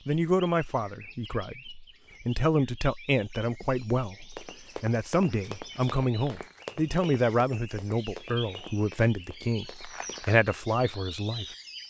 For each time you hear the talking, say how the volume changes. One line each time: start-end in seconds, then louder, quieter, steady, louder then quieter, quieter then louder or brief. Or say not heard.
0.1-11.4 steady.